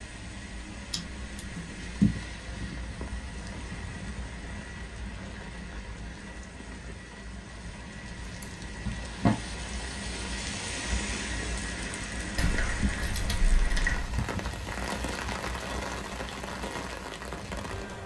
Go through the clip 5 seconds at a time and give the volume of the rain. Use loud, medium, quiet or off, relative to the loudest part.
medium, medium, loud, loud.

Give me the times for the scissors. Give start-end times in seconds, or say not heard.
0.9-2.2, 8.2-9.4, 12.3-14.2.